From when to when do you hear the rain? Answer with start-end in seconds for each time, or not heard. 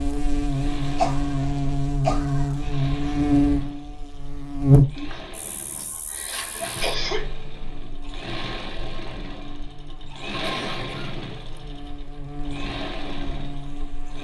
not heard.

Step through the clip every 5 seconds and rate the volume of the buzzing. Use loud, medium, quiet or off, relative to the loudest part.
loud, quiet, quiet.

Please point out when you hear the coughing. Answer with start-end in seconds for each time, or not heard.
0.9-2.5, 5.0-7.2, 10.4-11.6.